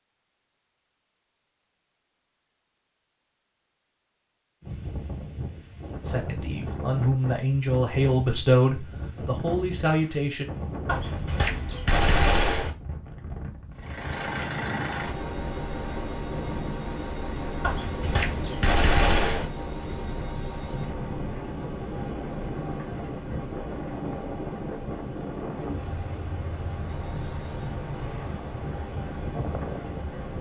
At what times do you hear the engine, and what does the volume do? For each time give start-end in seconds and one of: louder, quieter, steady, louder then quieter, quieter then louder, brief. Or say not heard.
13.8-30.3 quieter.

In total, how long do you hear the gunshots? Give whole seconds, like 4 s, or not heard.
4 s.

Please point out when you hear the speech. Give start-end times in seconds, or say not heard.
6.0-10.4.